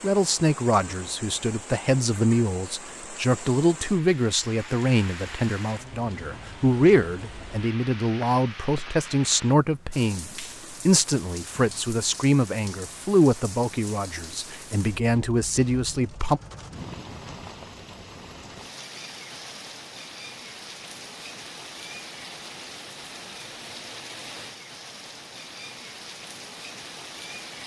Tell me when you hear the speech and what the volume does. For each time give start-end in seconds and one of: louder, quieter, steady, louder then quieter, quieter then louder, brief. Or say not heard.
0.0-16.4 steady.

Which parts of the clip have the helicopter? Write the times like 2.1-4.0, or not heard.
not heard.